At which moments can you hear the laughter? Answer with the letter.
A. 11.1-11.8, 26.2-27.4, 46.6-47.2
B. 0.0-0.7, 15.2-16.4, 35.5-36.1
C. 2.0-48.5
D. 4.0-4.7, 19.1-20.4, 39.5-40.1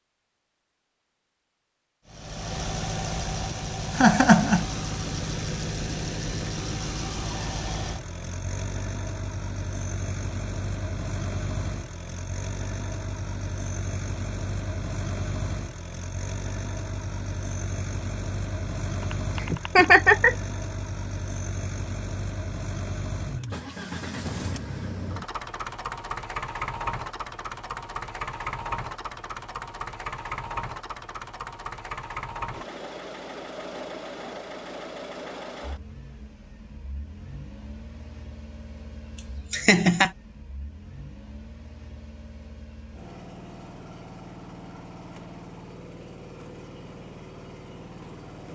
D.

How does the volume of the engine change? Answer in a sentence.
The loudness of the engine goes down.